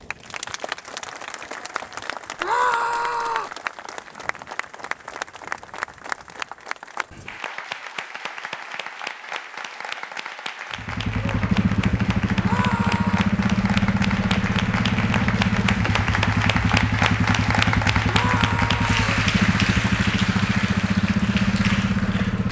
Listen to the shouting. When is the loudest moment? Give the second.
3 s.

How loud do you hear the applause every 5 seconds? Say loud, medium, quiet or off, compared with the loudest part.
medium, medium, medium, loud, medium.